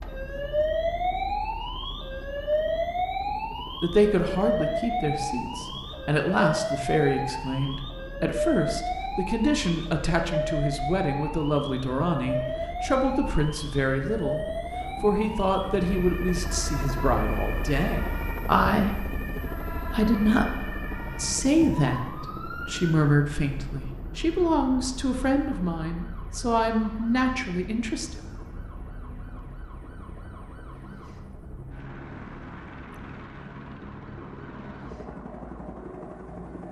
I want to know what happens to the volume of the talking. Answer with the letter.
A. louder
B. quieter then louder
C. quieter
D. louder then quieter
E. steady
E.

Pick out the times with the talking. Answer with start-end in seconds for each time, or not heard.
3.8-28.2.